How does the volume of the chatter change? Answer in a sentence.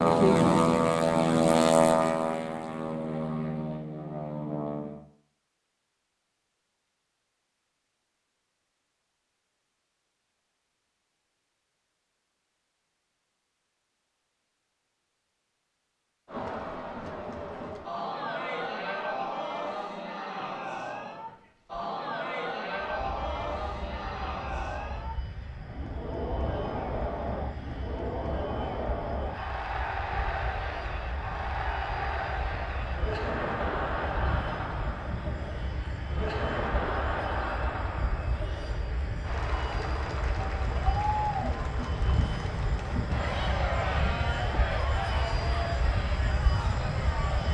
The volume of the chatter stays about the same.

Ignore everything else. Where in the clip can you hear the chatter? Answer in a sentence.
The chatter can be heard from 16.2 to 47.4 s.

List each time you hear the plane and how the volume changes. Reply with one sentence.
The plane can be heard from 0.0 to 5.0 s, getting quieter; and from 22.8 to 47.4 s, getting louder.